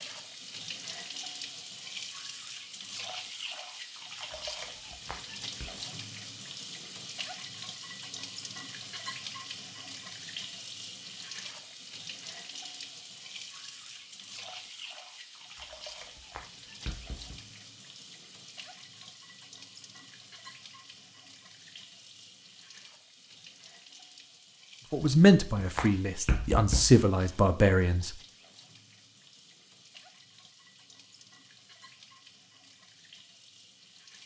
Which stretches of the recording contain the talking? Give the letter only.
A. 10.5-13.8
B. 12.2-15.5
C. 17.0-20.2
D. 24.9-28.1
D.